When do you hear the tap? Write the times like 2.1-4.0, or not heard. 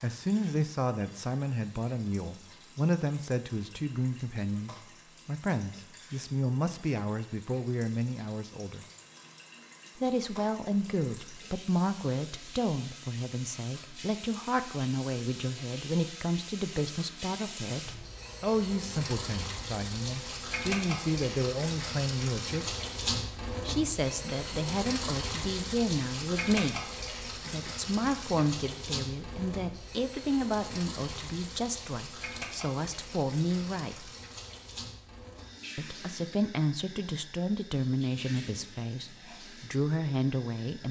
0.0-40.8.